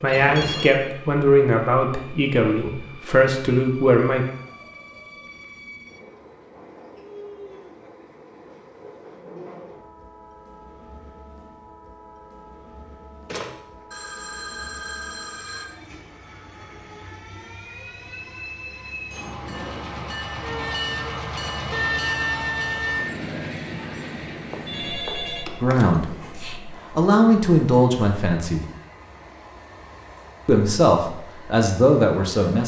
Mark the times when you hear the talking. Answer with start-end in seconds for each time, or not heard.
0.0-4.2, 25.6-26.1, 26.9-28.6, 30.4-32.6.